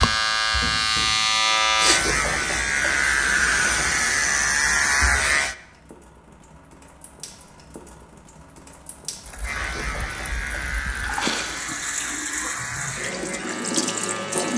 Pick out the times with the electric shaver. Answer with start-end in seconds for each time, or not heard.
0.0-5.5, 9.4-14.5.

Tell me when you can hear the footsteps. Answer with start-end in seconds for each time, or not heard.
not heard.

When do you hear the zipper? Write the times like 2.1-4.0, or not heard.
not heard.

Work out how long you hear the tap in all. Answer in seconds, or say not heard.
14 s.